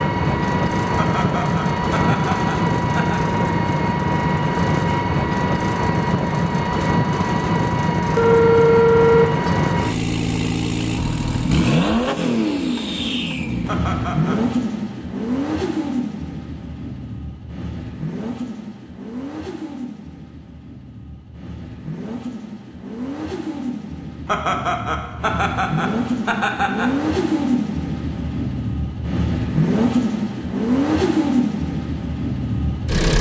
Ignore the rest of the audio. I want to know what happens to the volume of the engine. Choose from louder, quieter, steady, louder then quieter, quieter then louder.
quieter then louder.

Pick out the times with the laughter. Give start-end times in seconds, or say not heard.
0.9-3.2, 13.7-14.4, 24.2-26.9.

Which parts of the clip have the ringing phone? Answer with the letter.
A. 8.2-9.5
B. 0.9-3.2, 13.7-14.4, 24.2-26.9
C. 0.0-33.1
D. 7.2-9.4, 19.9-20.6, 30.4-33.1
A.